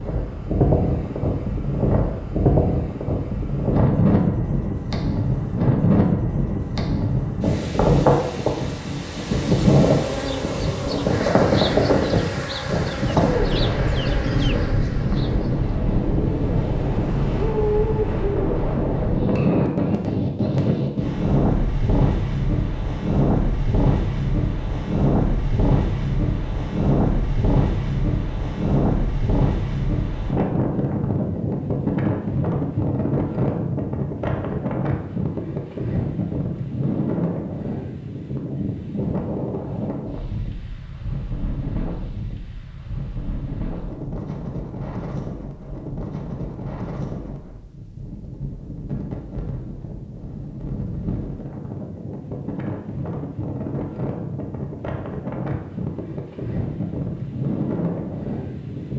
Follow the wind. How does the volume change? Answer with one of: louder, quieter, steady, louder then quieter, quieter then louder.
quieter.